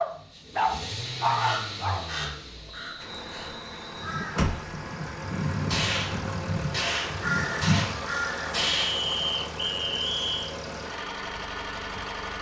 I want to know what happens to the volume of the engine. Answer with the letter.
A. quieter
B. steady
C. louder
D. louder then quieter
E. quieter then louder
B.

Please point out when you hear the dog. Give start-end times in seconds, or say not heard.
0.0-2.3.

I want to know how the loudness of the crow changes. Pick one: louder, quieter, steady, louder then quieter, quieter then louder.
louder.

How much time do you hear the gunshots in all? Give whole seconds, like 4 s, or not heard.
3 s.